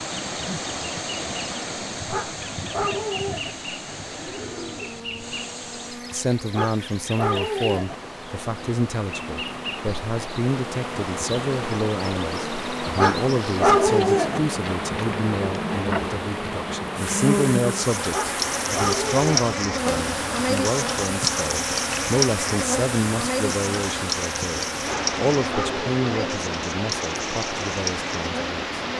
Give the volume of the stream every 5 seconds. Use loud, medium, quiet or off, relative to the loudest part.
loud, medium, loud, loud, loud, loud.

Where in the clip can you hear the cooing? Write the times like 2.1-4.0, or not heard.
3.9-5.3.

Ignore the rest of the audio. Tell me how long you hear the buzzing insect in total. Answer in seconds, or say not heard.
29 s.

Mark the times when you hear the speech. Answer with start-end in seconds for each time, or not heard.
6.1-28.8.